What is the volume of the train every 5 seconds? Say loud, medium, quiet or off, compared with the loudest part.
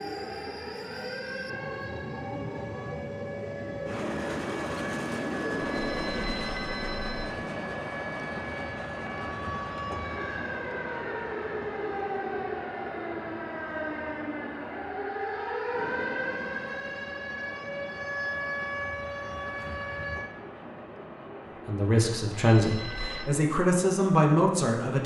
loud, loud, medium, medium, medium.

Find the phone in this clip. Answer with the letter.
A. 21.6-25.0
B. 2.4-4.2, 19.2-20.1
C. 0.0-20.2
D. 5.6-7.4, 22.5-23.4
D.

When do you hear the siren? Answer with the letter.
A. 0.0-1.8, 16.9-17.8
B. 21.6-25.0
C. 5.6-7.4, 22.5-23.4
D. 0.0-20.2
D.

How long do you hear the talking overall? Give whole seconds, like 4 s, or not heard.
3 s.